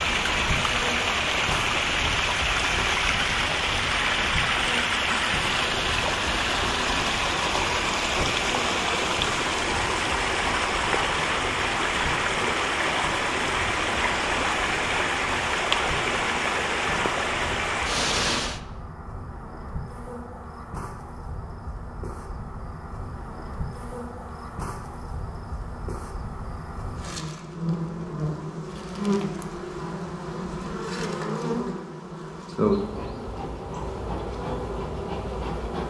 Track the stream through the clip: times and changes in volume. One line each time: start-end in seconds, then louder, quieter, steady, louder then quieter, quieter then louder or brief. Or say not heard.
0.0-18.6 steady.